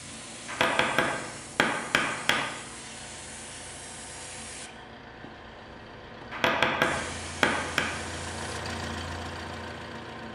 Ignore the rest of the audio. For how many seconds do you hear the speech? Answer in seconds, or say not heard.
not heard.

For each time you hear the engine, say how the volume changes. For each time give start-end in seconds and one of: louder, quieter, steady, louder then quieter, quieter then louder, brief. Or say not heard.
0.0-10.3 louder.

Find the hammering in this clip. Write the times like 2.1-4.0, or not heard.
0.5-2.5, 6.3-7.9.